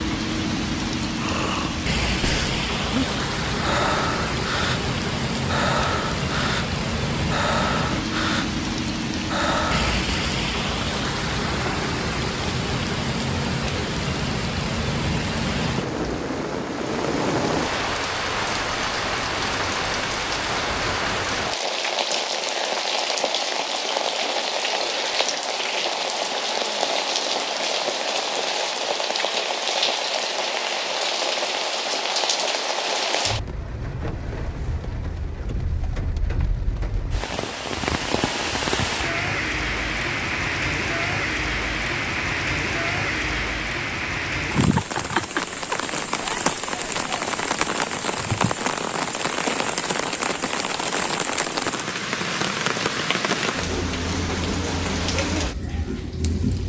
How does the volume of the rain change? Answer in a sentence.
The volume of the rain stays about the same.